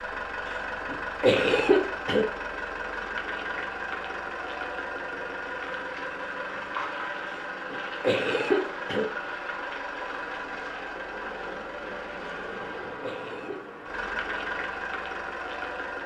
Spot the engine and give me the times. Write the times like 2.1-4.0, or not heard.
0.0-16.0.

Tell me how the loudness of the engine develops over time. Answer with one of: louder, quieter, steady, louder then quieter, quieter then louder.
steady.